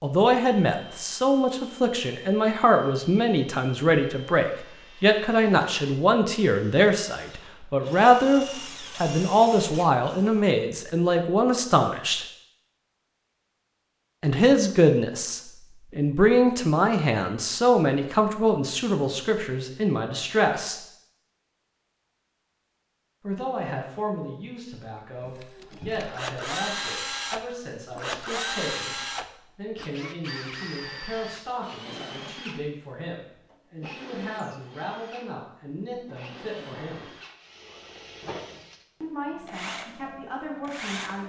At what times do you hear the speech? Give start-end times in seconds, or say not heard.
0.0-12.2, 14.2-20.8, 23.2-37.1, 39.0-41.2.